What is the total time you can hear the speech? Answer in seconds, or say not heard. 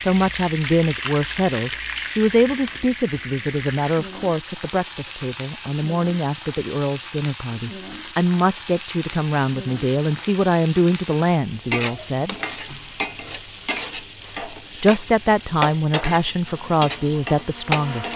16 s.